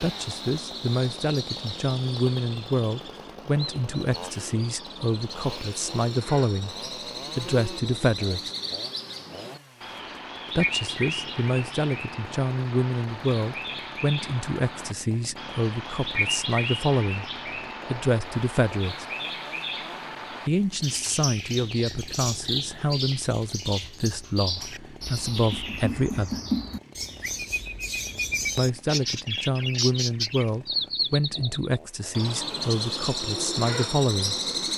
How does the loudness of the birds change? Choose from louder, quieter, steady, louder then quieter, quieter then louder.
louder.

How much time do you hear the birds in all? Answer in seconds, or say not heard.
35 s.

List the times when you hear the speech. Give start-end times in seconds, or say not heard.
0.0-6.8, 7.3-8.5, 10.6-17.3, 17.9-19.1, 20.4-26.4, 28.6-34.4.